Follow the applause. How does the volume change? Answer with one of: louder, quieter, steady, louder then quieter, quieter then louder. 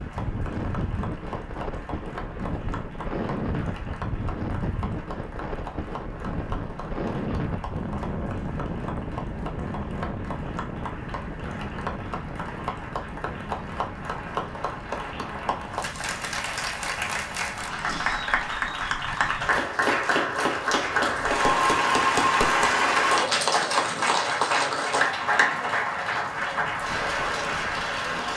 louder.